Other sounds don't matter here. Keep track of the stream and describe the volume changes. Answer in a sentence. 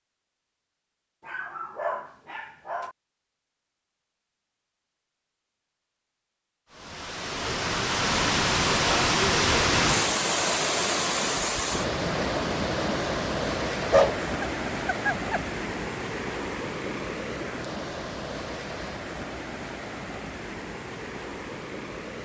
The loudness of the stream goes down.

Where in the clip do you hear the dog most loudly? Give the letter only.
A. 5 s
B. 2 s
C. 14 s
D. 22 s
C.